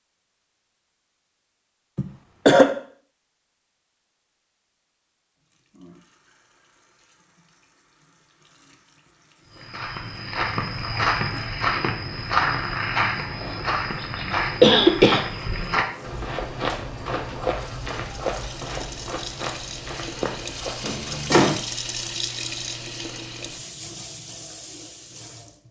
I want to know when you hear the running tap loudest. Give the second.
22 s.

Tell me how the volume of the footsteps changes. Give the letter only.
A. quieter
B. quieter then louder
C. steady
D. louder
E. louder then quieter
A.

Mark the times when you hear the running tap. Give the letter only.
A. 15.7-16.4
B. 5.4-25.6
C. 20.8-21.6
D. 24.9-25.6
B.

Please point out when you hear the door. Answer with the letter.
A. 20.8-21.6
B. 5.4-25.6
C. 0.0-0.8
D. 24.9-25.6
A.